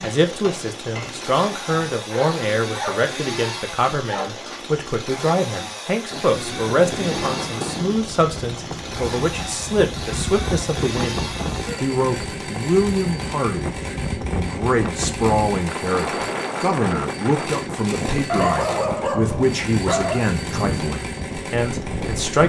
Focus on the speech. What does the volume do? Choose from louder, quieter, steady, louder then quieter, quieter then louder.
steady.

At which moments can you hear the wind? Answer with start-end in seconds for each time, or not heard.
6.1-22.4.